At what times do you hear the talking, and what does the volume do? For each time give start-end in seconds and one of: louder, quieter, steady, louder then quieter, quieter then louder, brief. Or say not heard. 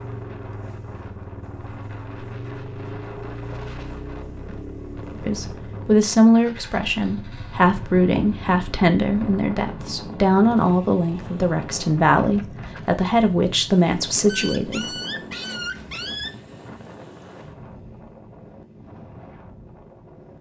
5.2-14.9 steady.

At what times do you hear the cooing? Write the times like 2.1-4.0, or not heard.
not heard.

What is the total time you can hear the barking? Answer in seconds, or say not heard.
2 s.